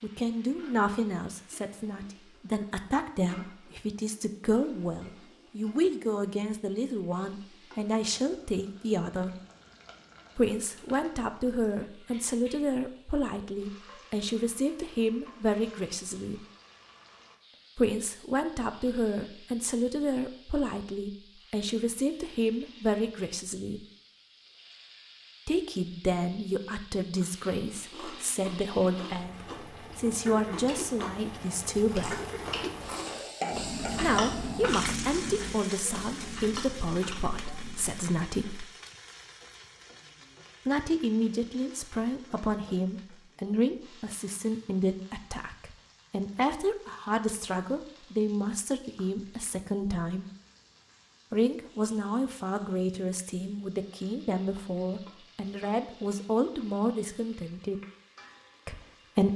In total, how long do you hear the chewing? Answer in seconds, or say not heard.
11 s.